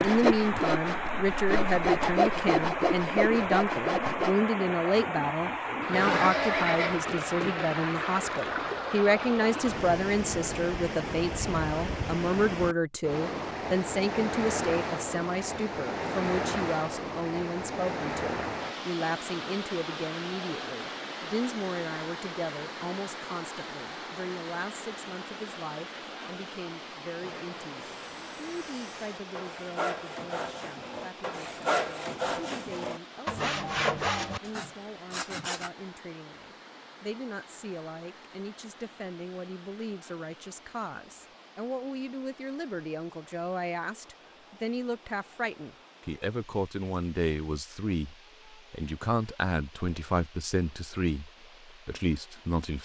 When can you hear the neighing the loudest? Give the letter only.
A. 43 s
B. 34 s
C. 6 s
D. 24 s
C.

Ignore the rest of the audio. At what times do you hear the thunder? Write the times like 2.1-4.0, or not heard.
not heard.